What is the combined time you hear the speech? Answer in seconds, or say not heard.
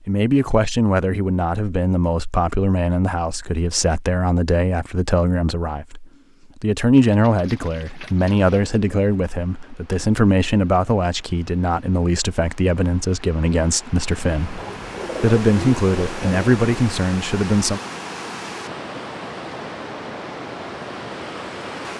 17 s.